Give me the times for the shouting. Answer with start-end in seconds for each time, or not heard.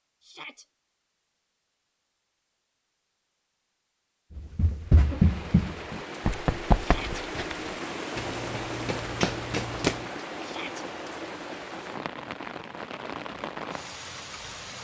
0.2-0.7, 6.8-7.2, 10.4-10.8.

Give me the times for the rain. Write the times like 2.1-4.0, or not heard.
4.8-14.7.